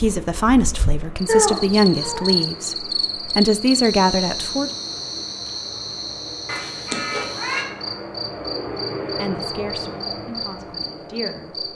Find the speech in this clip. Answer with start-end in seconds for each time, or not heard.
0.0-4.7, 9.2-11.7.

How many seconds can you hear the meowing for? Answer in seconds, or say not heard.
2 s.